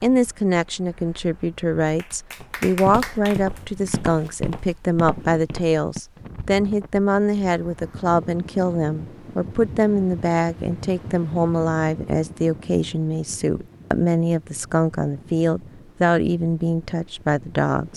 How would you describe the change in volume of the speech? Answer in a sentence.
The loudness of the speech stays about the same.